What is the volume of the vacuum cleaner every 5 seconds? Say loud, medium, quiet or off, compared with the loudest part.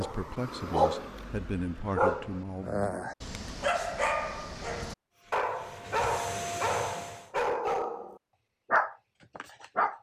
off, loud.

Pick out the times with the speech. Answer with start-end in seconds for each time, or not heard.
0.0-2.9.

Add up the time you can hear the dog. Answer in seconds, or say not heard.
10 s.